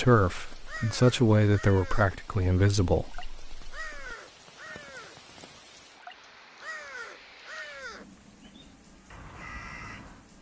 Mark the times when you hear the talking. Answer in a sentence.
The talking can be heard from 0.0 to 4.0 s.